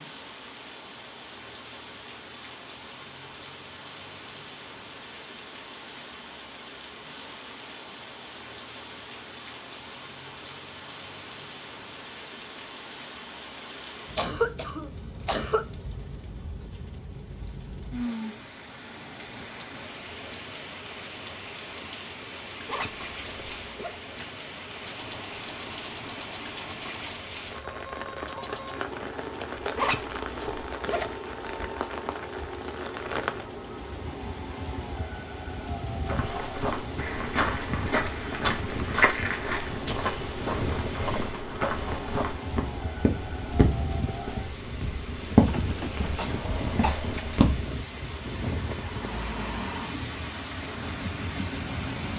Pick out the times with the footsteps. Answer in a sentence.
The footsteps can be heard from 36.0 to 47.8 s.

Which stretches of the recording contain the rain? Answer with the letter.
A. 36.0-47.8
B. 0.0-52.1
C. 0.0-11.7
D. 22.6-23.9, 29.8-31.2
B.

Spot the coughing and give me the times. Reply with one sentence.
You can hear the coughing from 14.2 to 15.7 s and from 46.1 to 47.0 s.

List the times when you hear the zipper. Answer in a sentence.
The zipper can be heard from 22.6 to 23.9 s and from 29.8 to 31.2 s.